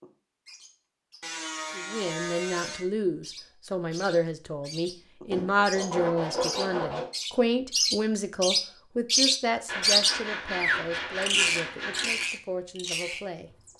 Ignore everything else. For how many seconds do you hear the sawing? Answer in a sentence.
You can hear the sawing for 6 seconds altogether.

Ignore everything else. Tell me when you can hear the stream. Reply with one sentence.
The stream can't be heard in this clip.